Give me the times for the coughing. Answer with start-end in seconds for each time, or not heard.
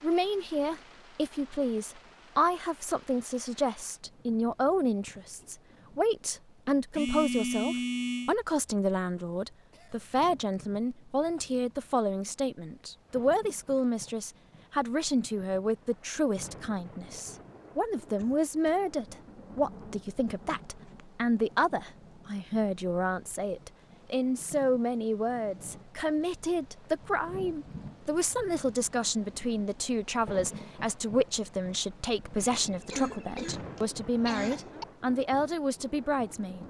9.7-10.1, 18.1-18.8, 32.9-34.9.